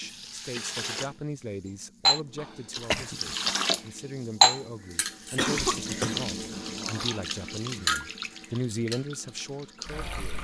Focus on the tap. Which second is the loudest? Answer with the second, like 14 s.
4 s.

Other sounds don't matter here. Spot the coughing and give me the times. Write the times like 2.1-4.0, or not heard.
2.4-3.5, 5.3-7.2.